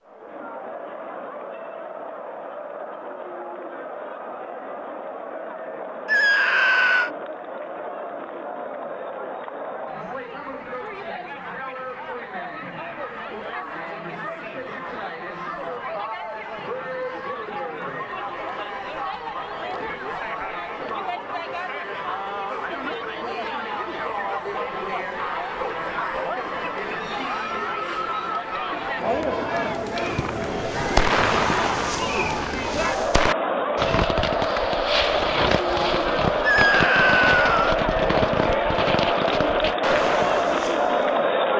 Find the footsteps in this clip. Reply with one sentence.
You can't hear the footsteps here.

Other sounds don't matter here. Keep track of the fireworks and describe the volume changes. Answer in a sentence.
The loudness of the fireworks stays about the same.